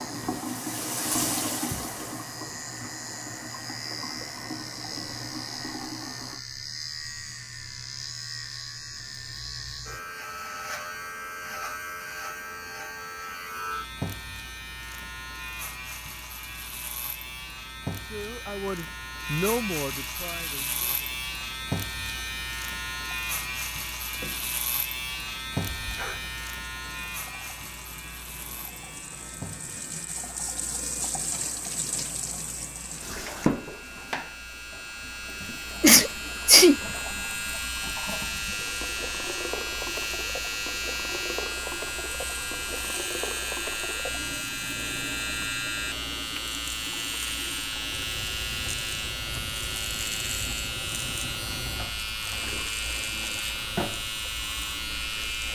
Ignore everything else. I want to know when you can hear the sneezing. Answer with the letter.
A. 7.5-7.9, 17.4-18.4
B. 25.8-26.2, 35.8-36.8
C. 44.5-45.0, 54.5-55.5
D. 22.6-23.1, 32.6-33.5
B.